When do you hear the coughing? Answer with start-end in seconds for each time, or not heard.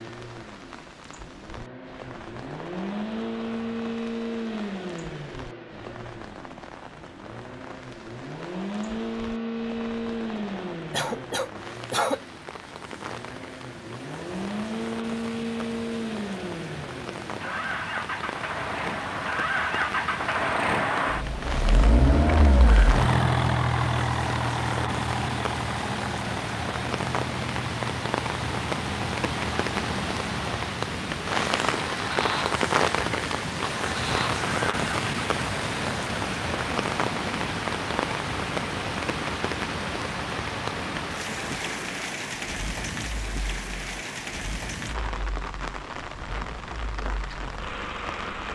10.9-12.2.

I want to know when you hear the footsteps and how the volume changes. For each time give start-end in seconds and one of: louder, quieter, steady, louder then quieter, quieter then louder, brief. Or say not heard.
not heard.